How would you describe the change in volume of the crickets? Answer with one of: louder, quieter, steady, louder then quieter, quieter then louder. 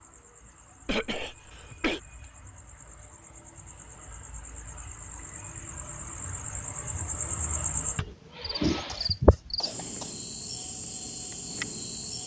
louder then quieter.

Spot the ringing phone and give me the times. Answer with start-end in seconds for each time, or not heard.
not heard.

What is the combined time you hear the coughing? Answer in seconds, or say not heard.
3 s.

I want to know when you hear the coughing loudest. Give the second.
1 s.